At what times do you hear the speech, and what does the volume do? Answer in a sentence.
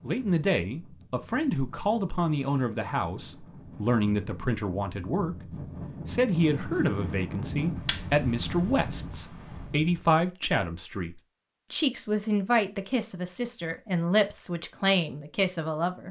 You can hear the speech from 0.0 to 16.0 s, at a steady volume.